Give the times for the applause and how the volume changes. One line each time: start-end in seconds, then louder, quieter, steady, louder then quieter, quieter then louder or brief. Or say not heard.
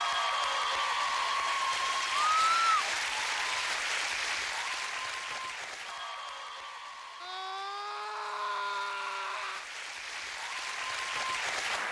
0.0-11.8 quieter then louder.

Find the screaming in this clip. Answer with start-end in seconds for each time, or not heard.
2.4-2.9, 7.2-9.7.